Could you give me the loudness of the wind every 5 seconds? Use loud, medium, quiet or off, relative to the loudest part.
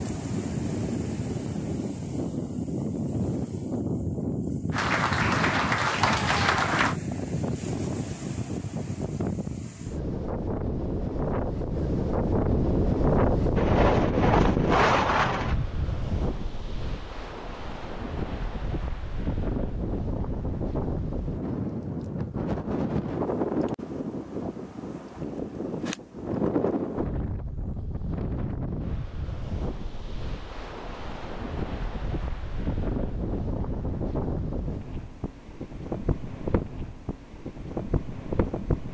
medium, medium, loud, medium, medium, medium, medium, medium.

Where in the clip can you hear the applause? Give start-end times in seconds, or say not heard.
4.7-7.0.